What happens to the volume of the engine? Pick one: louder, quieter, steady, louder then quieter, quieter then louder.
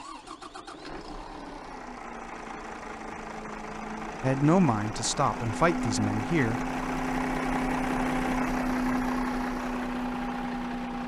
louder.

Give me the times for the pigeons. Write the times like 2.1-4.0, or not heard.
not heard.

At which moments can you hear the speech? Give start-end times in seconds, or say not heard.
4.2-6.7.